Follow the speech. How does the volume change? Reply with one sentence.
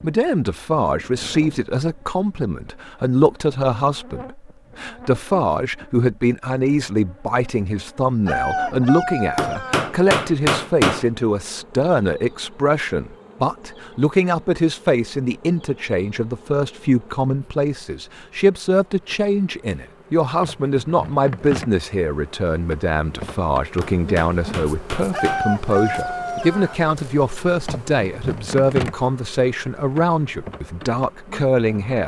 The volume of the speech stays about the same.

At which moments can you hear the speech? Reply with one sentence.
The speech can be heard from 0.0 to 32.0 s.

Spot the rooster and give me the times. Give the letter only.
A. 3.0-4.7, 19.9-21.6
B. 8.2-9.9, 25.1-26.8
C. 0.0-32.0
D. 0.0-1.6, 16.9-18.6
B.